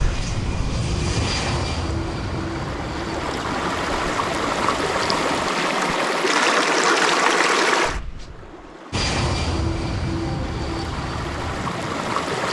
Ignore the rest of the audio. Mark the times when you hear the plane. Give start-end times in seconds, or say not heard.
0.0-5.5, 8.9-12.4.